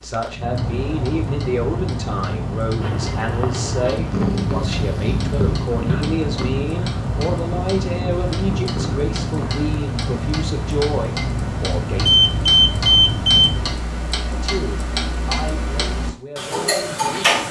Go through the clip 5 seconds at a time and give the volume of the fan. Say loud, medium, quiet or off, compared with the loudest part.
loud, loud, loud, off.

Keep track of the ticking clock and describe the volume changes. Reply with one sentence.
The loudness of the ticking clock goes up.